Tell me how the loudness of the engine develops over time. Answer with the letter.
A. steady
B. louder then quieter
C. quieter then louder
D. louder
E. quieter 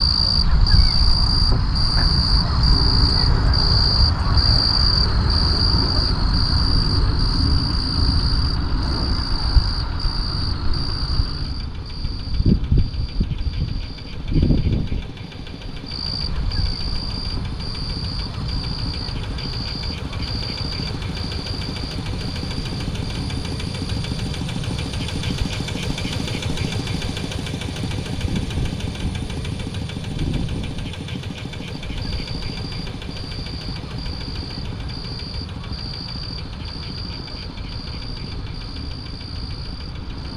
B.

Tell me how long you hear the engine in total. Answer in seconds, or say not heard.
40 s.